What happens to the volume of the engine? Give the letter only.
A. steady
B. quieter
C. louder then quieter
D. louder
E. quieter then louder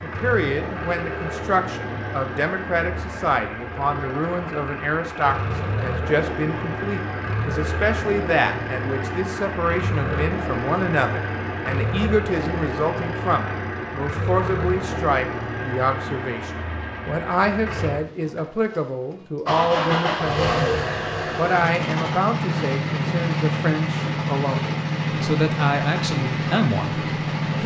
D.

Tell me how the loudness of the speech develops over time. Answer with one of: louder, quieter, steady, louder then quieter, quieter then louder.
steady.